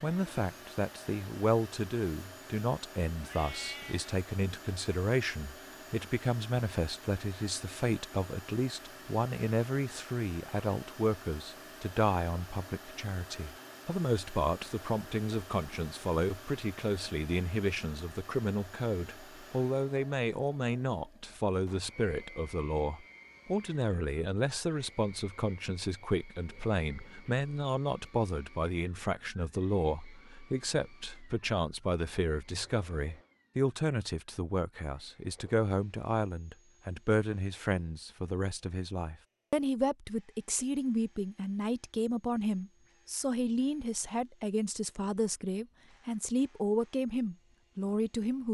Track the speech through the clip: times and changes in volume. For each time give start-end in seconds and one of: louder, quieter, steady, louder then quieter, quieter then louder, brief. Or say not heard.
0.0-48.4 steady.